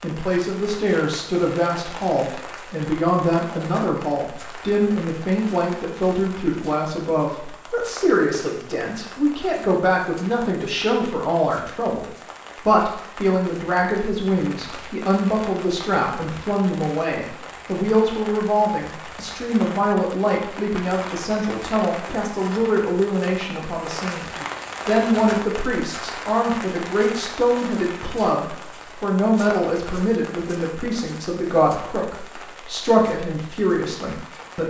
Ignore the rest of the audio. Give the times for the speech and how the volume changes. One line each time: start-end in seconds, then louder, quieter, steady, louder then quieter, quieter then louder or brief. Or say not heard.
0.0-34.6 steady.